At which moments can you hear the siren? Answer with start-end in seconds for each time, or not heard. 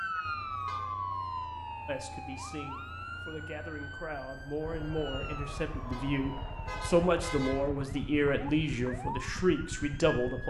0.0-10.4.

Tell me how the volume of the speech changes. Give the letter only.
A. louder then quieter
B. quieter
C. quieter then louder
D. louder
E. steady
D.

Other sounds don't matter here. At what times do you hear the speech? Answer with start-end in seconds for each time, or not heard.
1.9-10.4.